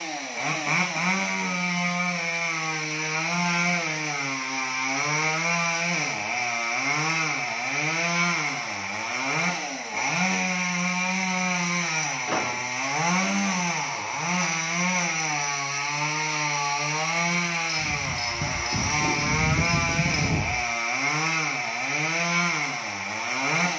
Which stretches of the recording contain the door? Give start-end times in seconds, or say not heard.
12.2-12.7.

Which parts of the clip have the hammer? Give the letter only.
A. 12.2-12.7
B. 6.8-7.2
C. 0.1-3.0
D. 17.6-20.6
D.